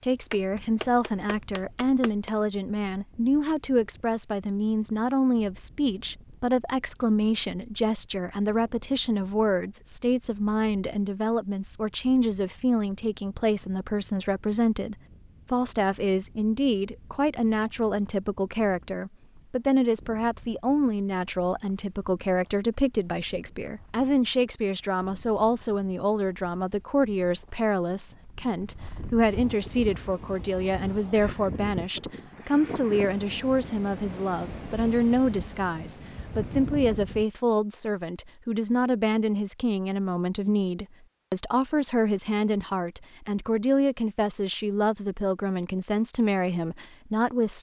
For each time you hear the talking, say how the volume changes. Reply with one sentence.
You can hear the talking from 0.0 to 47.5 s, at a steady volume.